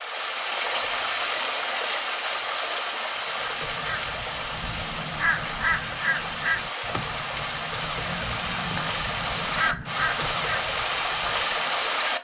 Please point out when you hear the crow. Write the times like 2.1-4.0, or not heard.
3.2-12.0.